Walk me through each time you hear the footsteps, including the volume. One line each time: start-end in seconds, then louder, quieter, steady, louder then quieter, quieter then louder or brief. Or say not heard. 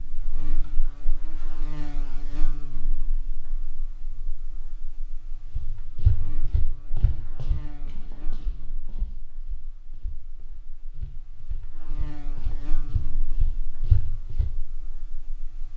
5.5-14.5 quieter then louder.